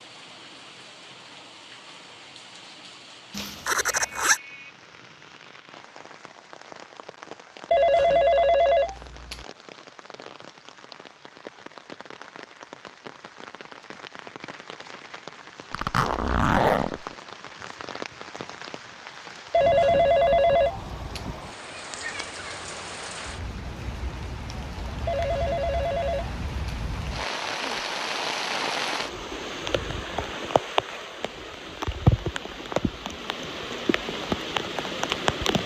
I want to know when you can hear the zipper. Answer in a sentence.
The zipper can be heard from 3.3 to 4.4 s, from 15.7 to 17.1 s and from 27.4 to 27.9 s.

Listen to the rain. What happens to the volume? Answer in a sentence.
The loudness of the rain goes up.